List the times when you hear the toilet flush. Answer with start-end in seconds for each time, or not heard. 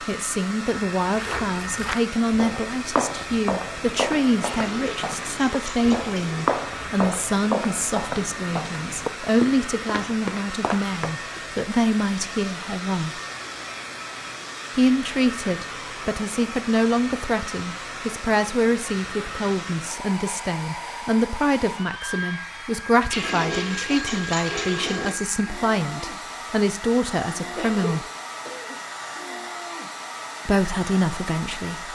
4.4-6.5, 23.1-25.1.